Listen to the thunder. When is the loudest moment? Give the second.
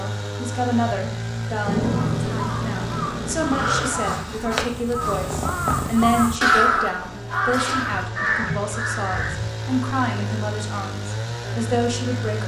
2 s.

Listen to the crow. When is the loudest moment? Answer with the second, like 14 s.
7 s.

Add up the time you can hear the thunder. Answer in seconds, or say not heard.
2 s.